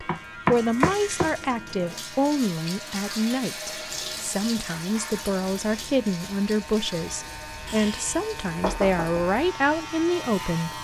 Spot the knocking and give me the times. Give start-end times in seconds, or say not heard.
0.1-1.4, 7.7-9.2.